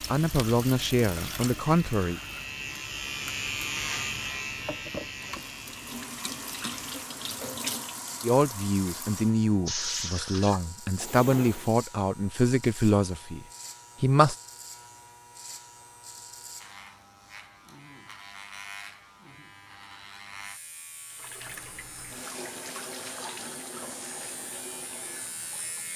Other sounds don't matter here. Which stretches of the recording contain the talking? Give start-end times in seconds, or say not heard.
0.1-2.2, 8.2-14.3.